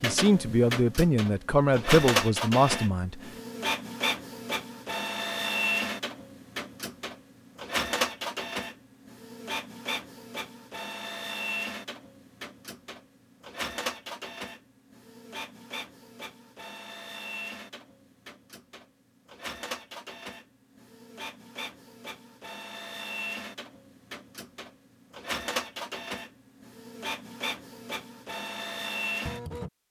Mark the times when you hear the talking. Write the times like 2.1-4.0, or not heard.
0.0-3.2.